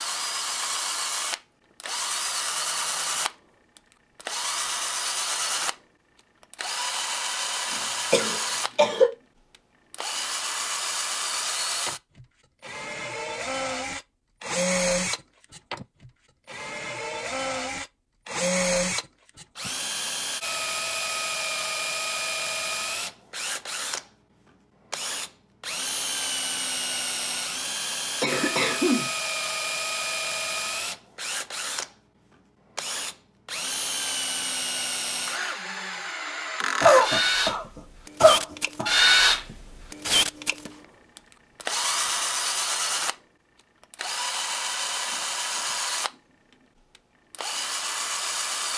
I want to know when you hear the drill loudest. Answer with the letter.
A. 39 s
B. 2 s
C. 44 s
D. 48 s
A.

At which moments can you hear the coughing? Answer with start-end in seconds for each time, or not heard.
7.7-9.1, 28.2-29.1, 36.8-37.6, 38.2-38.9.